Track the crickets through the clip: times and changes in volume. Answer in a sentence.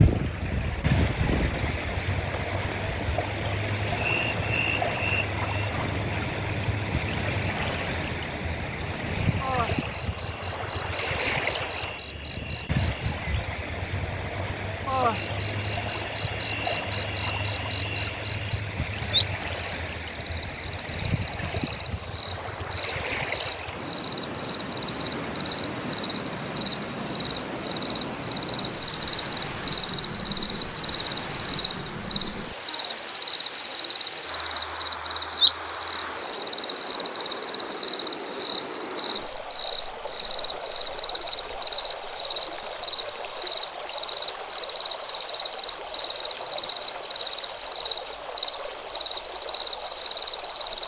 You can hear the crickets from 0.0 to 50.8 s, getting louder.